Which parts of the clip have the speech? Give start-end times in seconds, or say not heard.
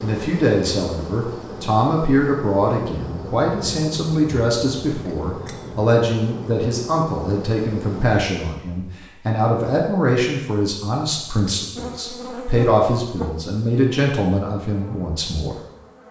0.0-15.6.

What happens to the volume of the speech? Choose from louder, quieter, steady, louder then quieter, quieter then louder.
steady.